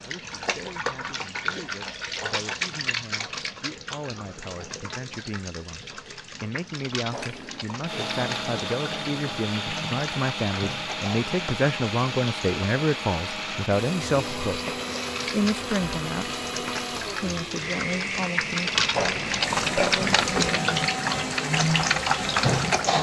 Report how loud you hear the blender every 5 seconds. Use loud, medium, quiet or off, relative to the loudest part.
off, loud, loud, loud, loud.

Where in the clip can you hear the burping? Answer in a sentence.
You can hear the burping from 18.9 to 20.5 s.